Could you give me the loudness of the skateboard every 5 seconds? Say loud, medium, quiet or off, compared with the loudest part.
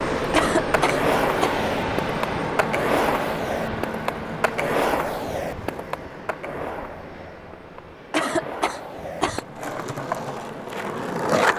loud, medium, loud.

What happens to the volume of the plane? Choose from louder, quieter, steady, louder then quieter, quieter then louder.
quieter.